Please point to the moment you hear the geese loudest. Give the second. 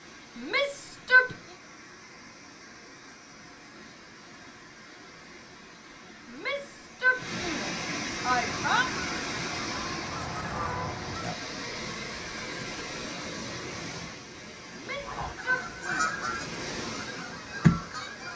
18 s.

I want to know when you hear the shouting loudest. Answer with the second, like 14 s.
1 s.